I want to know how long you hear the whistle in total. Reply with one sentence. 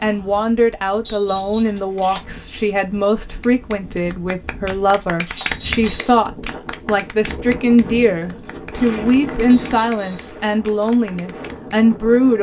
You can hear the whistle for 2 seconds altogether.